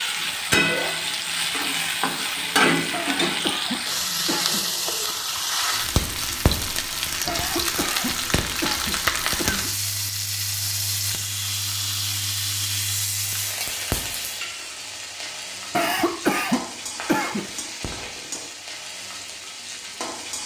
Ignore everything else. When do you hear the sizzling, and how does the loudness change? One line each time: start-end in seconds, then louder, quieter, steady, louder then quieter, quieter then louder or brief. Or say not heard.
0.0-20.4 quieter.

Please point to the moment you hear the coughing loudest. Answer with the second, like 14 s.
16 s.